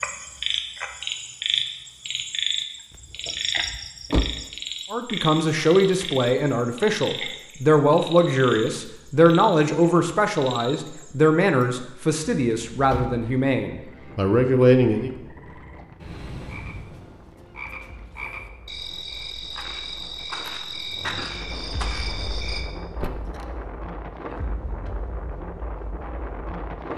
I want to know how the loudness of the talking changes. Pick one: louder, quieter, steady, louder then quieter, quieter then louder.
steady.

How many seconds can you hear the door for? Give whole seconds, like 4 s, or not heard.
3 s.